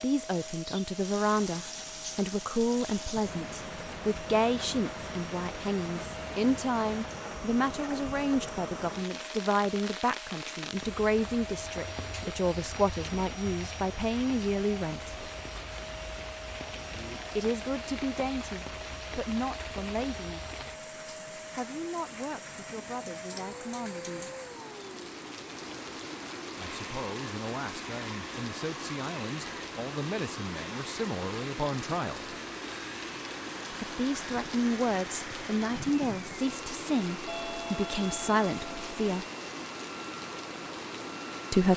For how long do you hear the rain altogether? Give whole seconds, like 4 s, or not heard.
42 s.